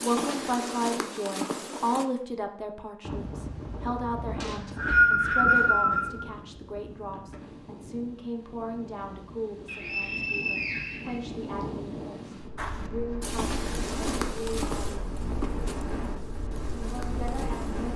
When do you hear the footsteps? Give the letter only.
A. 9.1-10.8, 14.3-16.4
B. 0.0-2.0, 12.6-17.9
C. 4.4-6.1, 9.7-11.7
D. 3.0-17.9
B.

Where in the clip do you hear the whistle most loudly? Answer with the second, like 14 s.
5 s.